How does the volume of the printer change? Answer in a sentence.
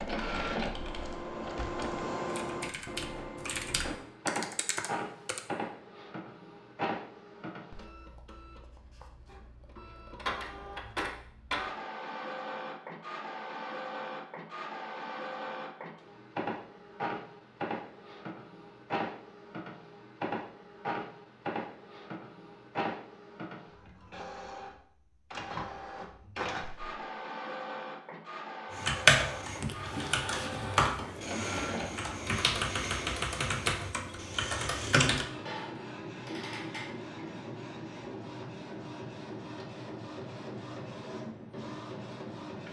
The volume of the printer stays about the same.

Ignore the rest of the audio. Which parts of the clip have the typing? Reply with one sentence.
The typing can be heard from 0.0 to 5.4 s and from 28.7 to 35.2 s.